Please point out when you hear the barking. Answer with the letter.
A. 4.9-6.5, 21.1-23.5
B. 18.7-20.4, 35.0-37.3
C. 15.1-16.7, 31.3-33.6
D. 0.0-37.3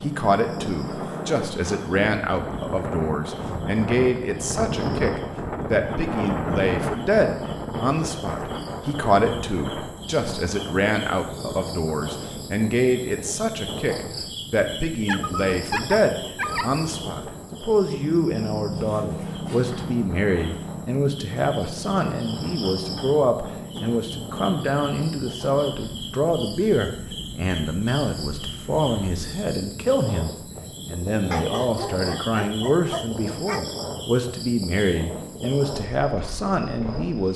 C.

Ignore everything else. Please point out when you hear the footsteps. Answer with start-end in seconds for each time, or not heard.
not heard.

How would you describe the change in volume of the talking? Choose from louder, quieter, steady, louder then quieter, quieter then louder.
steady.